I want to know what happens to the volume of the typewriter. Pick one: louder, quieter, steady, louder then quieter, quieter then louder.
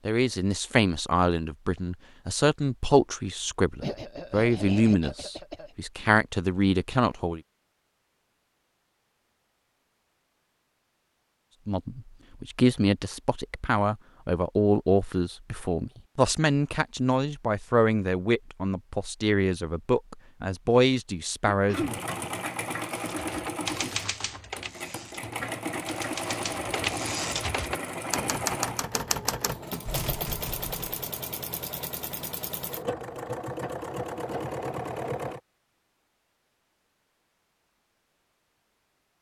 quieter then louder.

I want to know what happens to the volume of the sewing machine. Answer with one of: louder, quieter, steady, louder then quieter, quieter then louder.
steady.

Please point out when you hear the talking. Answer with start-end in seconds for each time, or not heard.
0.1-7.4, 11.7-21.9.